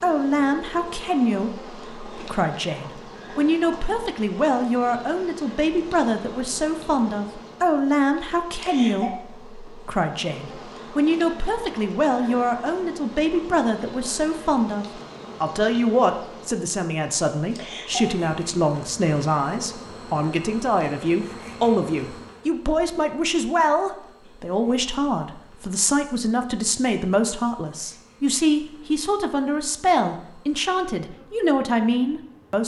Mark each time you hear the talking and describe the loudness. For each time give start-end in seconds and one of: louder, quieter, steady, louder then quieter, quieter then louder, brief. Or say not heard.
0.0-32.6 steady.